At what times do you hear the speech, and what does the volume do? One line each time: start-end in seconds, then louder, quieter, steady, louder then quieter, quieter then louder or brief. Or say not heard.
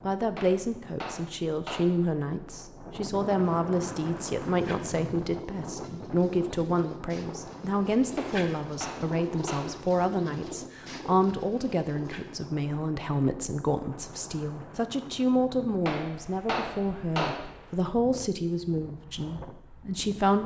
0.0-20.4 steady.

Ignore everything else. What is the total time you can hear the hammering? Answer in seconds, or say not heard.
5 s.